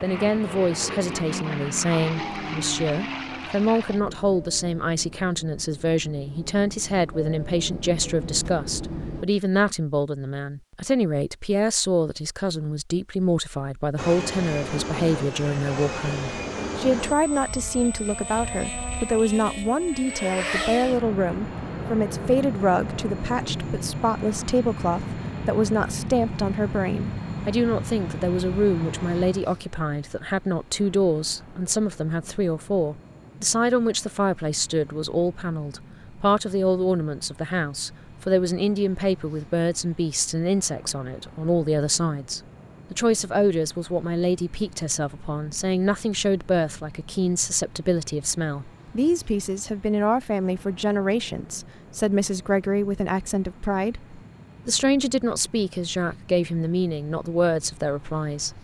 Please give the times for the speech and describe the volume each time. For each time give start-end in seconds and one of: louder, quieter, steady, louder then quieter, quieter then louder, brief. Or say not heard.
0.0-58.5 steady.